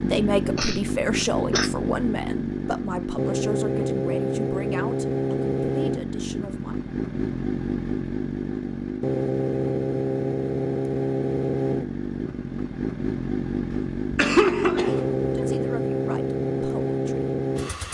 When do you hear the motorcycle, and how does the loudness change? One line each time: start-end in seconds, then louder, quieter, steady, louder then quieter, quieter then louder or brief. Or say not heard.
0.0-17.8 steady.